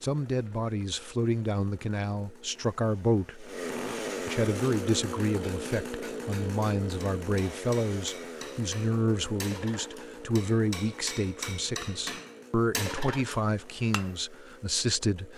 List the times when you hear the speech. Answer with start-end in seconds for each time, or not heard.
0.0-3.5, 4.2-15.3.